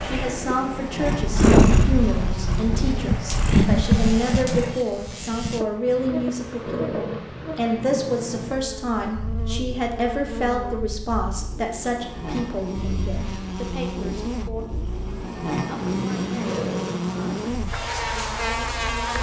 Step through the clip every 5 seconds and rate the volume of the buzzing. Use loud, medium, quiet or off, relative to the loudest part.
medium, medium, medium, loud.